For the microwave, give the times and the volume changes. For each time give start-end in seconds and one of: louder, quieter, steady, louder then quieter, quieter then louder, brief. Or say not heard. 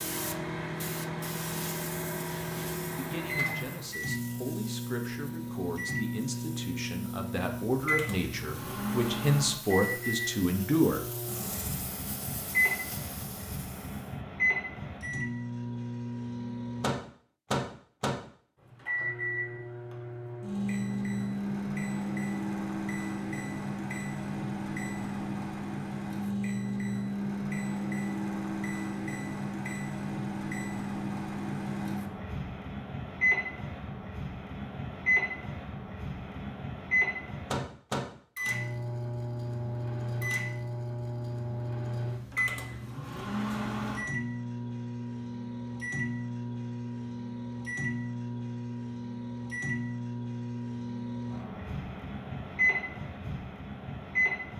0.0-54.5 steady.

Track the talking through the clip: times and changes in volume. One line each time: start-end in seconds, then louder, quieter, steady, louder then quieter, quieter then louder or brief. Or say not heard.
2.9-11.0 louder.